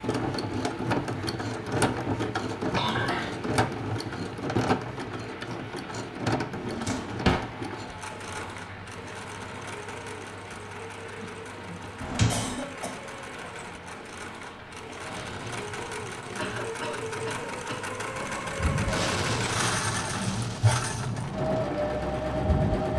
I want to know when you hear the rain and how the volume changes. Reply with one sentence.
You can hear the rain from 0.0 to 22.9 s, getting louder.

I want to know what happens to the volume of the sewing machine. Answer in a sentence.
The loudness of the sewing machine goes down, then up.